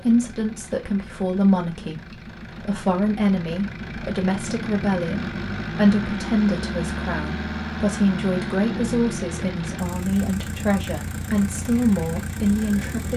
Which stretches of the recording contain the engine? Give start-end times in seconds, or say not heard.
0.0-13.1.